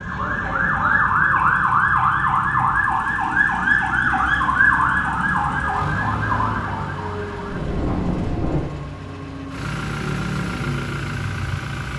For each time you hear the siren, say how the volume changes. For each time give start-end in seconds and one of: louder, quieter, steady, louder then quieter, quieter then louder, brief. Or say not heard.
0.0-8.6 quieter.